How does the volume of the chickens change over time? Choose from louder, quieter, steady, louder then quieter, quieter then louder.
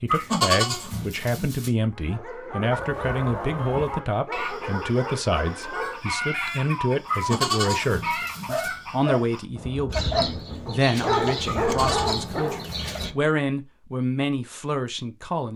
steady.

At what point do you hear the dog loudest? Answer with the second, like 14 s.
11 s.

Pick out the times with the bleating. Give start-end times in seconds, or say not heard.
0.1-1.7, 7.0-8.7, 11.4-12.8.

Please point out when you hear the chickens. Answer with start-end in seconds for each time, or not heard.
2.7-13.2.